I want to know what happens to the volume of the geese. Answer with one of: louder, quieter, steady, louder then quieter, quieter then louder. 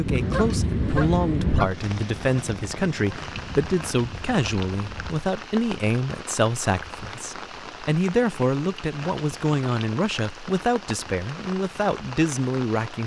quieter.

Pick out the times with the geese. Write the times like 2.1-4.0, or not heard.
0.0-5.3.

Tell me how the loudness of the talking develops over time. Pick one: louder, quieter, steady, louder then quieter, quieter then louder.
steady.